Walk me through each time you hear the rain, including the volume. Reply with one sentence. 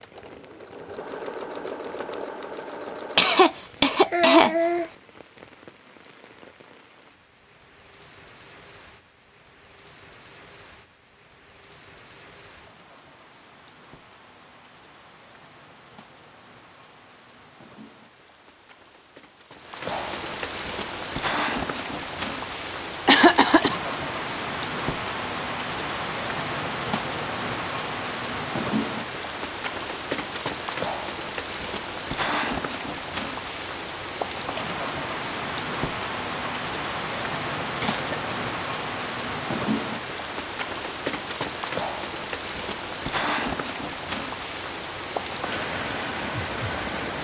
You can hear the rain from 0.0 to 47.1 s, getting louder.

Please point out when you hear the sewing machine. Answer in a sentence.
You can hear the sewing machine from 0.0 to 3.5 s.